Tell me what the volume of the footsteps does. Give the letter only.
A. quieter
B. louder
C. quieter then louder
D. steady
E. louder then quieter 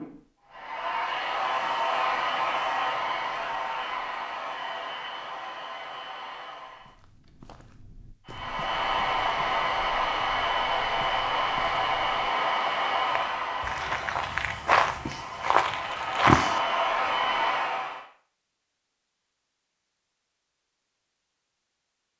B.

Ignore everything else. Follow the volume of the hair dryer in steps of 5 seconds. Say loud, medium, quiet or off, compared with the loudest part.
loud, loud, loud, loud, off.